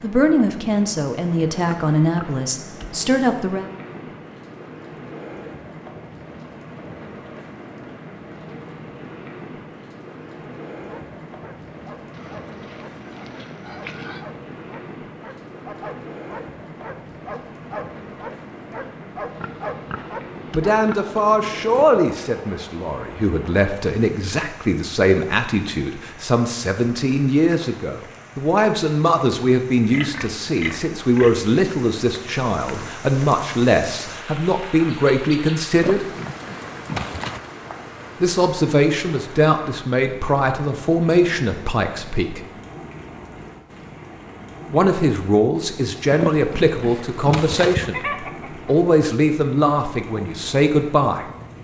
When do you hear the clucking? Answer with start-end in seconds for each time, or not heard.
47.2-48.8.